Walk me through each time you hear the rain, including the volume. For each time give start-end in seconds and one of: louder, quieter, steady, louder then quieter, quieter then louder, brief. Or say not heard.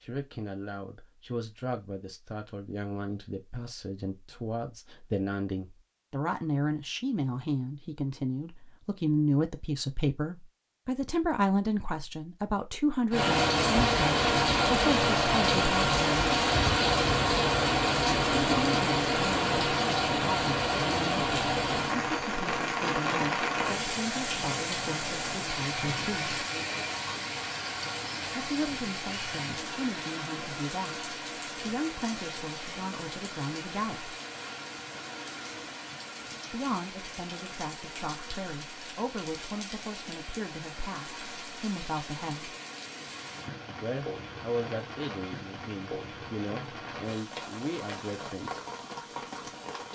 13.1-49.8 quieter.